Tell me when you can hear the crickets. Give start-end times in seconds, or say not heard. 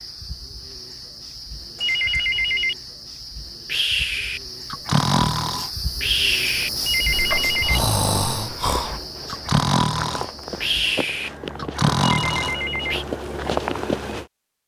0.0-11.0.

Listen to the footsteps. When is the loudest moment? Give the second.
14 s.